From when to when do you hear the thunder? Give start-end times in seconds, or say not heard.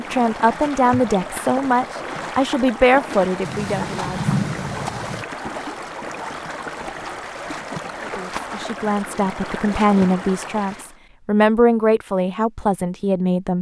3.5-5.2.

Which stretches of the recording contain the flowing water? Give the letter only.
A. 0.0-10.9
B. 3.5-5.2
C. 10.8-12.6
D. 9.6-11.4
A.